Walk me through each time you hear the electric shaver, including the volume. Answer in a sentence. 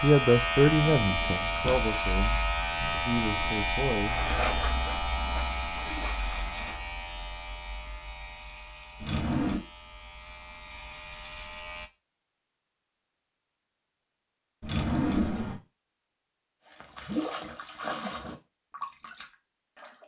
You can hear the electric shaver from 0.0 to 11.9 s, getting quieter.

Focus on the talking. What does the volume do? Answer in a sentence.
The volume of the talking goes down, then up.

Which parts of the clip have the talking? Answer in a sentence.
The talking can be heard from 0.0 to 4.2 s.